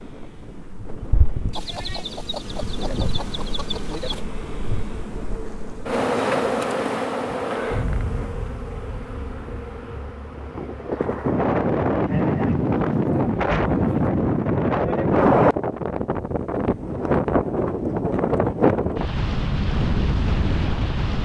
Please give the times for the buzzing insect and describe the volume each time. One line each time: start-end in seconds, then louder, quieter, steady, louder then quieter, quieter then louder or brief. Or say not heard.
0.0-14.1 louder then quieter.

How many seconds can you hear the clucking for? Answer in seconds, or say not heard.
3 s.